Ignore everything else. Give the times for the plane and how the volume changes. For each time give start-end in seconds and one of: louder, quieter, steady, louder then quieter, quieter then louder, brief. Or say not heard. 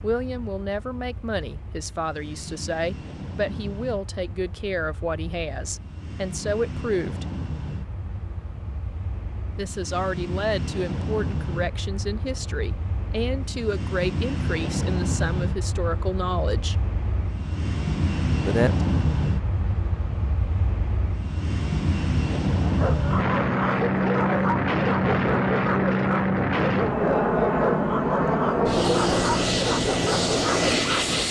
0.0-31.2 louder.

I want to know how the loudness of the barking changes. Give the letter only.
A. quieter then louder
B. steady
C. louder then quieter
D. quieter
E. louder
B.